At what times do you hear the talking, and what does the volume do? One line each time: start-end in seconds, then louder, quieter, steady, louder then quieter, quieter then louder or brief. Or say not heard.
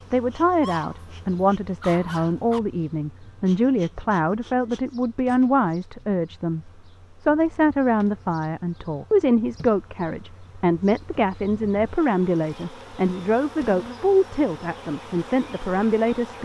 0.1-16.4 steady.